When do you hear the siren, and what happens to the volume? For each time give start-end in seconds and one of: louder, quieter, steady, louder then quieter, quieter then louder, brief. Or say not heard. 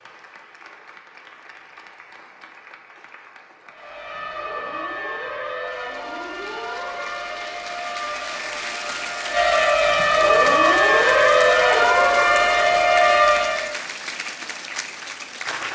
3.6-13.8 louder.